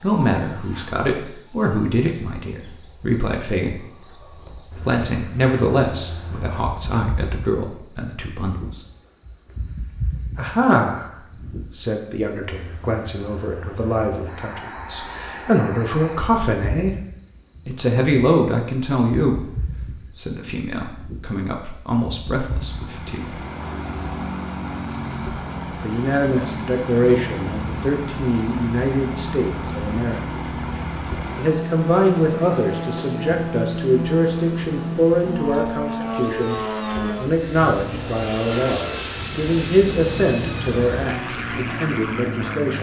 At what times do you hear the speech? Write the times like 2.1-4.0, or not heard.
0.0-4.1, 4.8-8.8, 10.3-16.9, 17.6-23.4, 25.8-30.2, 31.4-42.7.